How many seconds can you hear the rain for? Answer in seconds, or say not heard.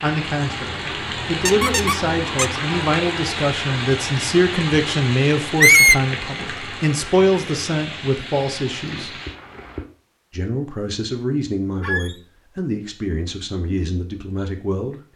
10 s.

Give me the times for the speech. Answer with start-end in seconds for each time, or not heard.
0.0-9.2, 10.3-15.0.